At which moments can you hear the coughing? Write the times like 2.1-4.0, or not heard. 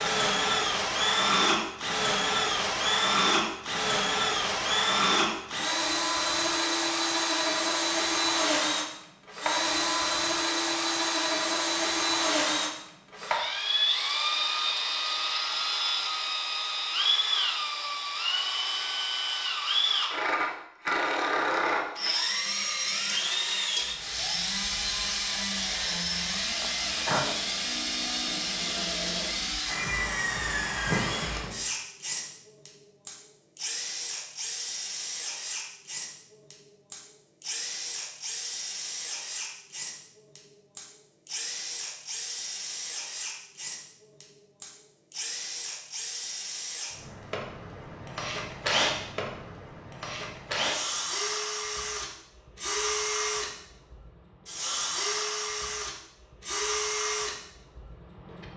26.6-27.4.